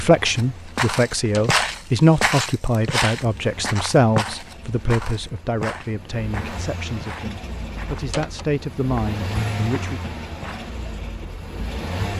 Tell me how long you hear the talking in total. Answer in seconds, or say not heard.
10 s.